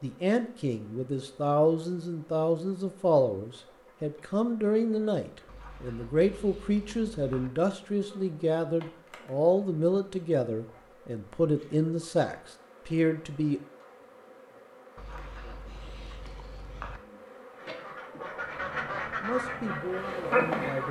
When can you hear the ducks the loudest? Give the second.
19 s.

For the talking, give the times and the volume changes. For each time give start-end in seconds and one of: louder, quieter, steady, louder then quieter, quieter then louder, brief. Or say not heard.
0.0-13.6 steady
19.2-20.8 brief.